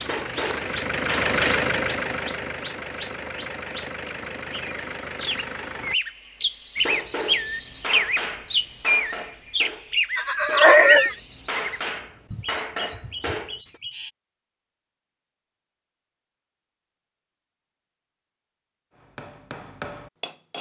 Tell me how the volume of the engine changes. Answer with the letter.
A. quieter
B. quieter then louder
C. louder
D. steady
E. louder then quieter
A.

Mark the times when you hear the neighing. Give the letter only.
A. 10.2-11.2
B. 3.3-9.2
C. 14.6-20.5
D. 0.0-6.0
A.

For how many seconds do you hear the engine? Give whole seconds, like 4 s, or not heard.
6 s.